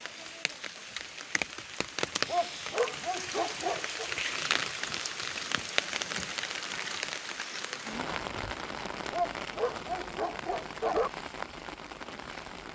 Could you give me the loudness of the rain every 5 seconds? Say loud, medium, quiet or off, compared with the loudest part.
loud, loud, medium.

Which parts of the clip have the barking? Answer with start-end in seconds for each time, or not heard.
2.2-4.1, 9.1-11.1.